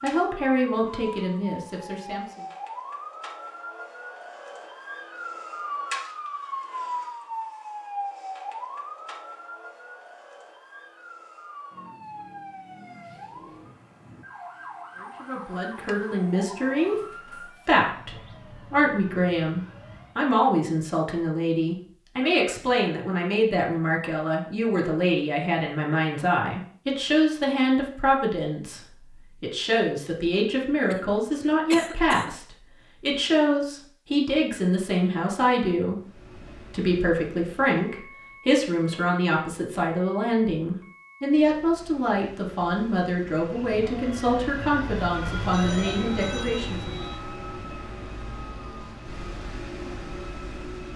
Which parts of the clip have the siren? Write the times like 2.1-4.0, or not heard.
0.0-20.2, 43.4-50.9.